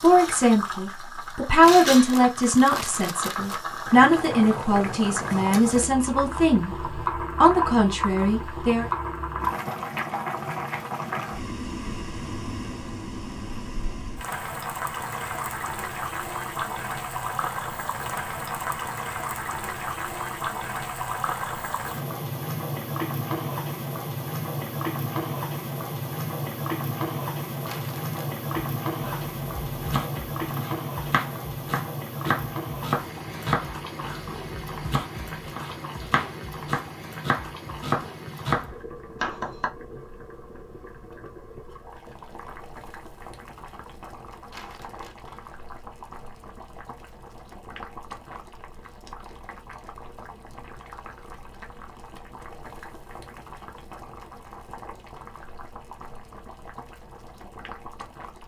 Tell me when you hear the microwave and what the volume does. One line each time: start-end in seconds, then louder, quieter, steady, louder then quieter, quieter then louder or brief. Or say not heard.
not heard.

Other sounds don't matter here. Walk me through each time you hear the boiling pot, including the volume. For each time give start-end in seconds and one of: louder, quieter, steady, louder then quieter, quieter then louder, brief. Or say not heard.
0.0-58.4 quieter.